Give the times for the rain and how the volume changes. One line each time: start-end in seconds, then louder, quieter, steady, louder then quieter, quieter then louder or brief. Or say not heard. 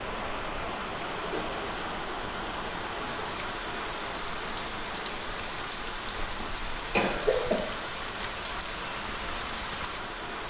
0.0-10.4 steady.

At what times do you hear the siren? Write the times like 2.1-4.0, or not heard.
not heard.